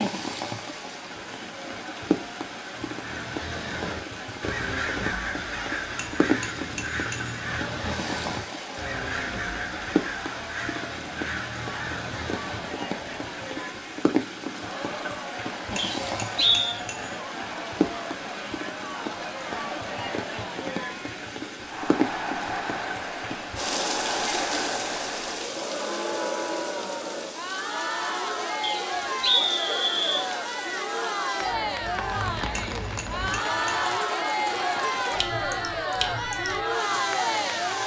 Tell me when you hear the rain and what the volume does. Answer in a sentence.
The rain can be heard from 0.0 to 37.8 s, at a steady volume.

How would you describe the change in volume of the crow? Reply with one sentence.
The volume of the crow stays about the same.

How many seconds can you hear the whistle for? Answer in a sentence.
You can hear the whistle for 3 seconds altogether.